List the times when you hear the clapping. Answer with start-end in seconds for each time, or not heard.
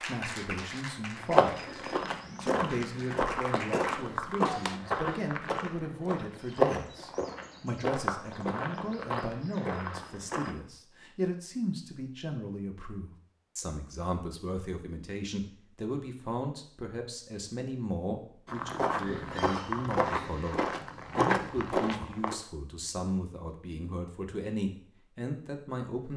0.0-4.8.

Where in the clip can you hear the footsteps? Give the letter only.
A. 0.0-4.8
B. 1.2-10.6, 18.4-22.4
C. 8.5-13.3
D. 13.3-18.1
B.